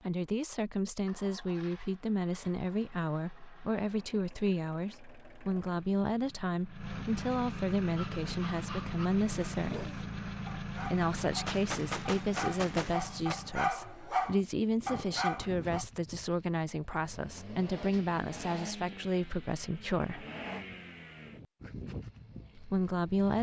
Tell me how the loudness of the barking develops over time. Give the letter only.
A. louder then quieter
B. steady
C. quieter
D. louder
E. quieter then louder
D.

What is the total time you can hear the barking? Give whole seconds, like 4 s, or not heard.
8 s.